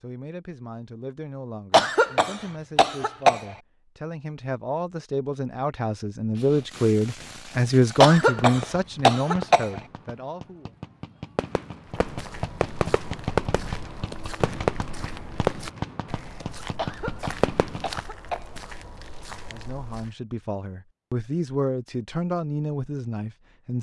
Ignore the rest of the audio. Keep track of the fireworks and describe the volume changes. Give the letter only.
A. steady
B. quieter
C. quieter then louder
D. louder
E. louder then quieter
D.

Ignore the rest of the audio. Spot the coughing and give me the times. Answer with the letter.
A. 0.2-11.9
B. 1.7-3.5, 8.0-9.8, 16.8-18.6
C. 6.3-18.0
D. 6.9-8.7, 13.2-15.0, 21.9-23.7
B.